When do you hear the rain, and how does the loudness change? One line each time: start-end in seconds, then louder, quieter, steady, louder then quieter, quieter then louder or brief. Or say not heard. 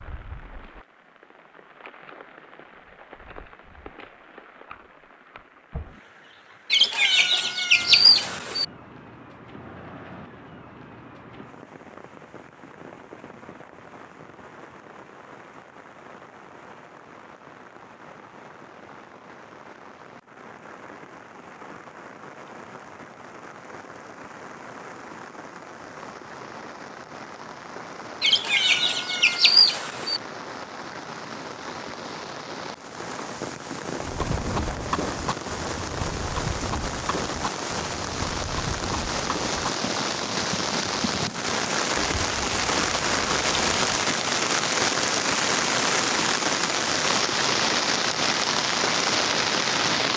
0.0-50.1 louder.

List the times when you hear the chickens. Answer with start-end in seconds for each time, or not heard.
6.7-8.7, 28.2-30.2.